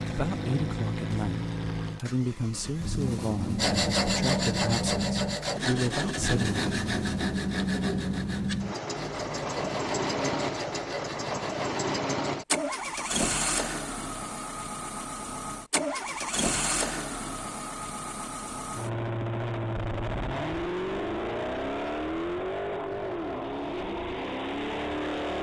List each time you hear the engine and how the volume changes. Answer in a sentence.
The engine can be heard from 0.0 to 25.3 s, at a steady volume.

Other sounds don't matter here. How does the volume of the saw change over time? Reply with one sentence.
The loudness of the saw goes down.